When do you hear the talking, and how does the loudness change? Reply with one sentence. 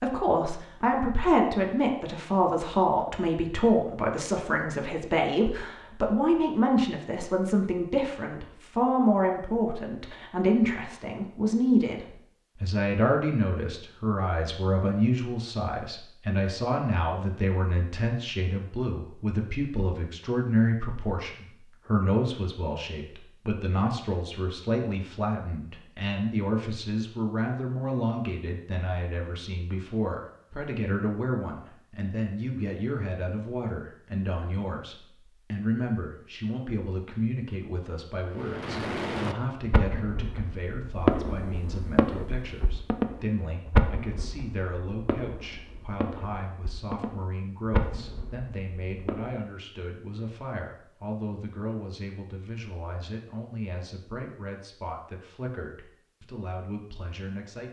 You can hear the talking from 0.0 to 57.6 s, getting quieter.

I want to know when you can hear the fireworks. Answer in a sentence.
You can hear the fireworks from 38.3 to 49.4 s.